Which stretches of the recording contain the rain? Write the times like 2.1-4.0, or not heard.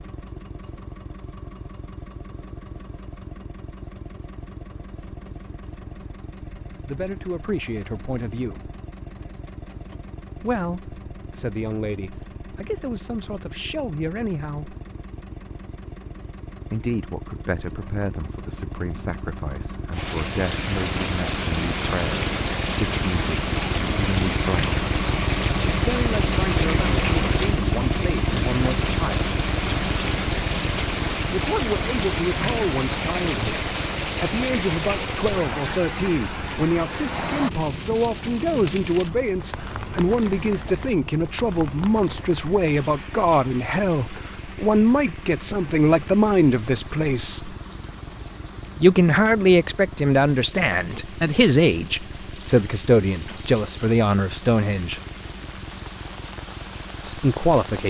19.9-57.8.